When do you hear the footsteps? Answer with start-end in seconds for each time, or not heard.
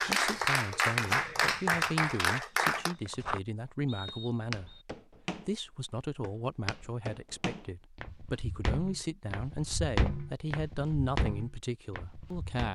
0.9-12.7.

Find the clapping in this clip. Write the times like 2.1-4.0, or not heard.
0.0-3.0.